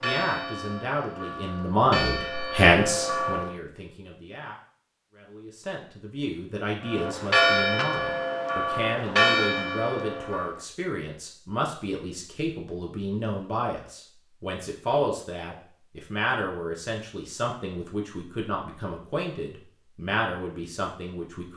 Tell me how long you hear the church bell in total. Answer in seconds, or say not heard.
7 s.